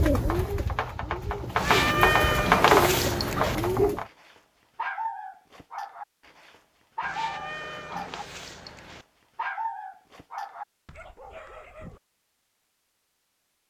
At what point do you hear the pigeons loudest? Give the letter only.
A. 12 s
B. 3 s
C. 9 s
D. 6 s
B.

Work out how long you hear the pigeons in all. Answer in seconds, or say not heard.
4 s.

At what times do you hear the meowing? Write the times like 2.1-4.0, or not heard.
1.6-3.5, 7.0-9.1.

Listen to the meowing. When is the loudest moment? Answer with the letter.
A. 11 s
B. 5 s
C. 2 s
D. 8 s
C.